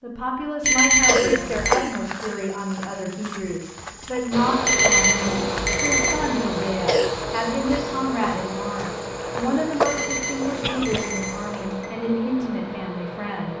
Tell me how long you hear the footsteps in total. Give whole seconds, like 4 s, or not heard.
11 s.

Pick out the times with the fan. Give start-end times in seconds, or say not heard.
4.3-13.5.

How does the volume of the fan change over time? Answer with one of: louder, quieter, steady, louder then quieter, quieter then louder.
quieter.